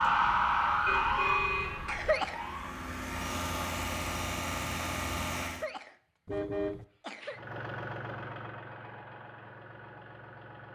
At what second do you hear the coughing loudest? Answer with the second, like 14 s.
2 s.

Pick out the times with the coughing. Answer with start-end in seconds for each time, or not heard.
1.9-2.4, 5.4-7.4.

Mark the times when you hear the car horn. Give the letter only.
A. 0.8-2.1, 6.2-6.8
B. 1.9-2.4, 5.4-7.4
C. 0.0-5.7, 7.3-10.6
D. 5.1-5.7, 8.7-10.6
A.